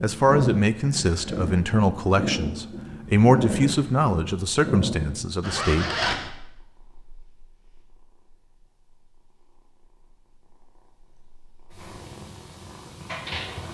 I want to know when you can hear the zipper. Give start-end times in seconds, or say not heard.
5.4-6.3.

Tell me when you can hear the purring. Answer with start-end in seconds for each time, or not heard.
0.0-13.7.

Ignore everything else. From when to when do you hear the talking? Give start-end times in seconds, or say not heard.
0.0-5.9.